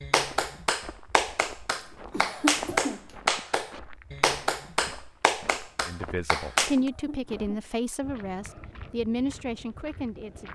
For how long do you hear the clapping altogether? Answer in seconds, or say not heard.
7 s.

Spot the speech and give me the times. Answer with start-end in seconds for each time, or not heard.
5.8-10.5.